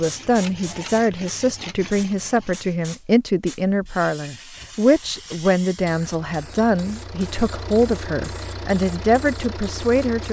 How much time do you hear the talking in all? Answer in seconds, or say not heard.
10 s.